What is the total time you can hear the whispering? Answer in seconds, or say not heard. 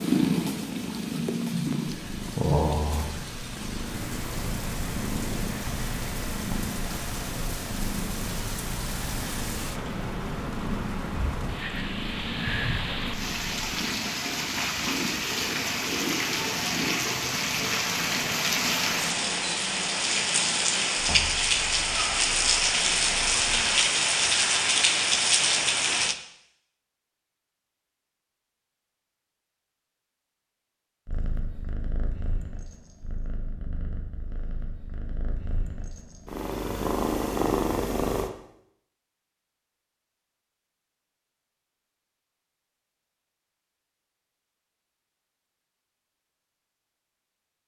not heard.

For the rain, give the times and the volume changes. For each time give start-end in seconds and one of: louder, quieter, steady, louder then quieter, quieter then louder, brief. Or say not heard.
0.0-26.1 louder.